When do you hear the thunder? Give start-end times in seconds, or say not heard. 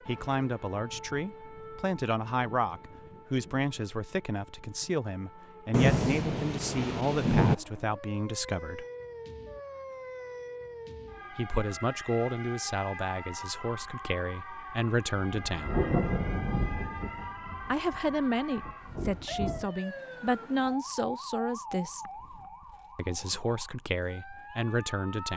5.7-7.5, 15.2-18.0, 18.6-19.6.